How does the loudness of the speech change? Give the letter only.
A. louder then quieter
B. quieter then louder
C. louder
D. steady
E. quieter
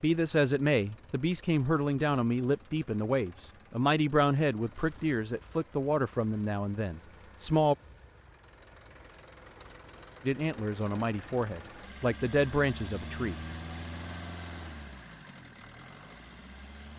D.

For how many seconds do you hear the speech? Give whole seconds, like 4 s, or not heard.
11 s.